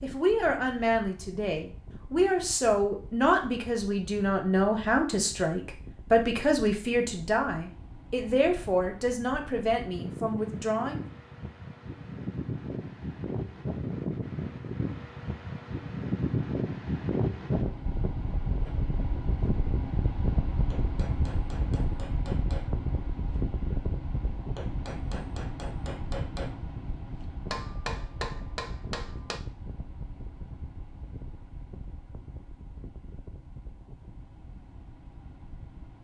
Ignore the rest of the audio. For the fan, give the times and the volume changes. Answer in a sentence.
The fan can be heard from 0.0 to 35.9 s, getting louder then quieter.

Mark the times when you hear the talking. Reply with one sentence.
You can hear the talking from 0.0 to 11.1 s.